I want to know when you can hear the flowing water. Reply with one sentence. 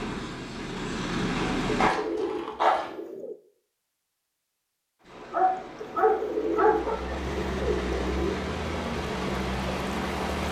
You can hear the flowing water from 5.0 to 10.4 s.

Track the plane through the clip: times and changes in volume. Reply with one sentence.
You can hear the plane briefly from 0.0 to 1.9 s; and from 5.0 to 10.4 s, getting louder.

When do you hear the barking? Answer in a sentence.
You can hear the barking from 1.4 to 2.9 s and from 5.3 to 7.2 s.